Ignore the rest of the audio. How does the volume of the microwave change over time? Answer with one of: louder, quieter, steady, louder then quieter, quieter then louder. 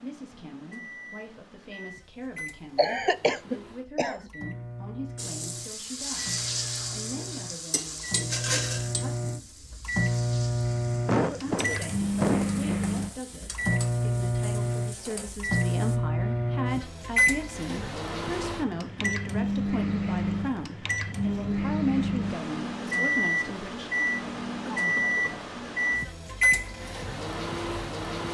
louder.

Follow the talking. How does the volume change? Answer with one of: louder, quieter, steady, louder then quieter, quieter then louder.
louder.